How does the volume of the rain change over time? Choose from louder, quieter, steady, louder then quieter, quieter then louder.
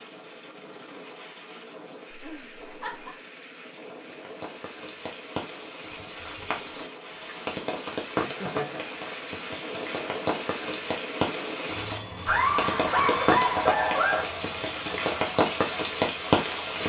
louder.